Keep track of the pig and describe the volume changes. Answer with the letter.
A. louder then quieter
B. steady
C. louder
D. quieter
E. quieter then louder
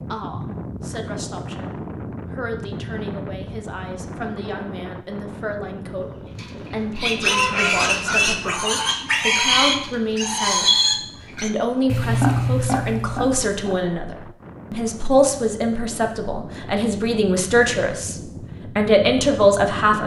B.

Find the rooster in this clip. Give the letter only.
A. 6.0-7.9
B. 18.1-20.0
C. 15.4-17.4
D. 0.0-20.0
A.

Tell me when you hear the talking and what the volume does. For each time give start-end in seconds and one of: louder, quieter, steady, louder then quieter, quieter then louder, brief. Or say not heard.
0.0-20.0 louder.